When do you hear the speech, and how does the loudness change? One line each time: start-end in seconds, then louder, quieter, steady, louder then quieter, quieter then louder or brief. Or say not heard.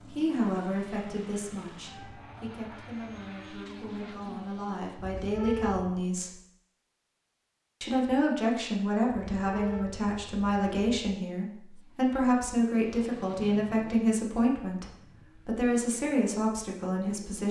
0.0-6.3 quieter then louder
7.8-17.4 steady.